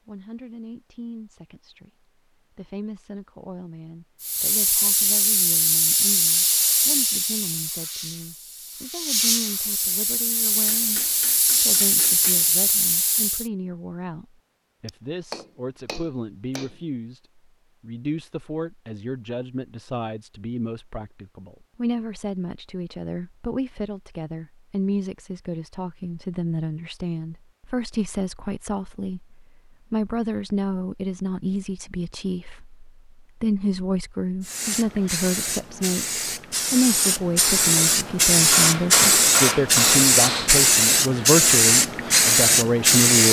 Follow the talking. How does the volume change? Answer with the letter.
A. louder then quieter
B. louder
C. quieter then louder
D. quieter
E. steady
B.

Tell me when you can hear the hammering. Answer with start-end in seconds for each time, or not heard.
10.7-12.6, 14.8-16.8, 38.5-40.6.